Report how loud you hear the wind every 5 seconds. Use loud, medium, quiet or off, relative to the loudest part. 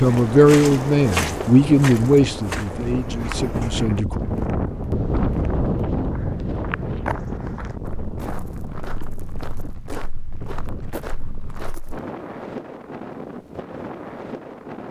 loud, loud, medium.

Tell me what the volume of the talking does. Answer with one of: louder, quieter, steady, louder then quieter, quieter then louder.
quieter.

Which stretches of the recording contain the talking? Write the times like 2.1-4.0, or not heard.
0.0-4.2.